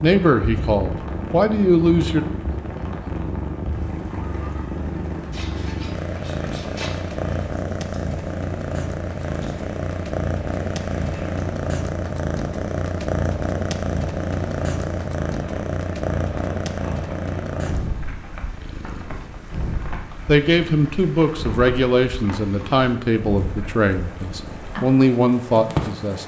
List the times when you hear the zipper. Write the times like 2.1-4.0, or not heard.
5.2-6.9.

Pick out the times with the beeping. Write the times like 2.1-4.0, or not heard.
not heard.